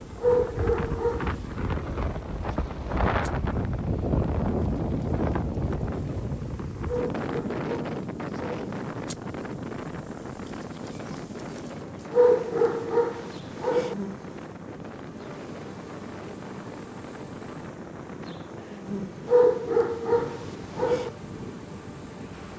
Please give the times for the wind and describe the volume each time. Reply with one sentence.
The wind can be heard from 0.0 to 22.5 s, getting quieter.